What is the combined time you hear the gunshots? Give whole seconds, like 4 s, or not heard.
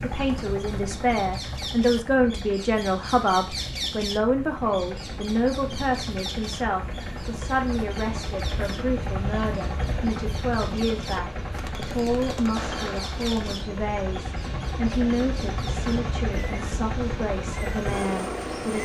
2 s.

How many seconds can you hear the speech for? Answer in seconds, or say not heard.
19 s.